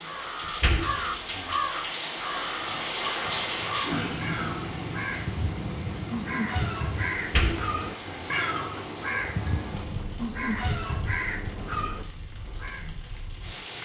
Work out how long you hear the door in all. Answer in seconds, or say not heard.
2 s.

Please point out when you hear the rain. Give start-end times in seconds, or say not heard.
0.0-13.8.